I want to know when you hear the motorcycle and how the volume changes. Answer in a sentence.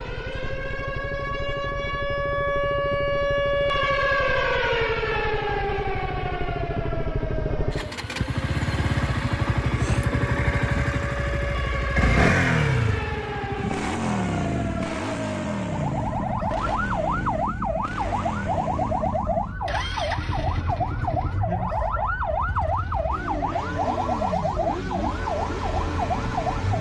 You can hear the motorcycle from 0.0 to 26.7 s, getting louder then quieter.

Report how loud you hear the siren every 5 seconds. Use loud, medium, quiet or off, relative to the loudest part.
loud, medium, medium, loud, loud, loud.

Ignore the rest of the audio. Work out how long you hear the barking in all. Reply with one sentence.
The barking can't be heard in this clip.